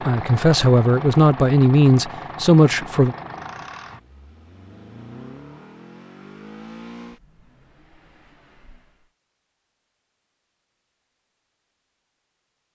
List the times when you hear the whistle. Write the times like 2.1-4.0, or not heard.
not heard.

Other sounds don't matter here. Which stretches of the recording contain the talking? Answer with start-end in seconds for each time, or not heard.
0.1-3.1.